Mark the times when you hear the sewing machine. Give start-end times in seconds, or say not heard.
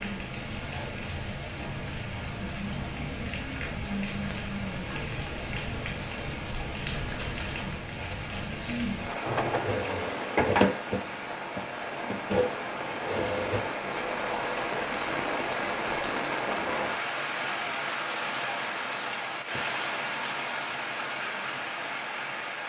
9.2-13.7.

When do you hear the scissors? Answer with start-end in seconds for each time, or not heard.
not heard.